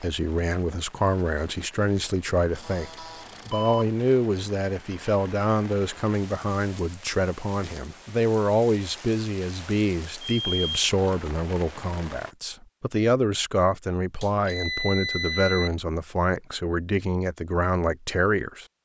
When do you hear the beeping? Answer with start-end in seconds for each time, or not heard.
2.5-3.9, 10.2-10.7, 14.2-15.7.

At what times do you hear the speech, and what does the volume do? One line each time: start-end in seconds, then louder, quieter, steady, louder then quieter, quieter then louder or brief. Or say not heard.
0.0-18.6 steady.